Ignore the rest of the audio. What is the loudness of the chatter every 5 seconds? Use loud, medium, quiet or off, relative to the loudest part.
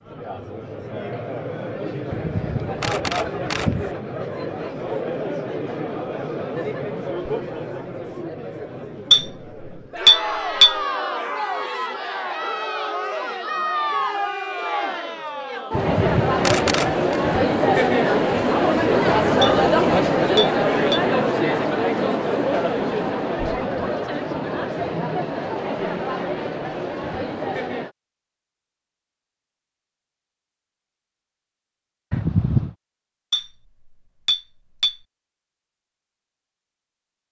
medium, medium, medium, loud, loud, medium, off, off.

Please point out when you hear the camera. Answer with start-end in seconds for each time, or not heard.
2.1-3.9, 15.7-17.1, 32.1-32.8.